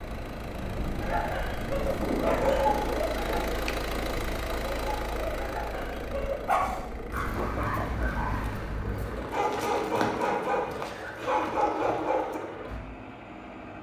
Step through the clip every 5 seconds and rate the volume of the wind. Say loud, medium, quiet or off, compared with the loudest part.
loud, medium, off.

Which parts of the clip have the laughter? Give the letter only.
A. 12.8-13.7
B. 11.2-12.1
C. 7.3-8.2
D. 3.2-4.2
C.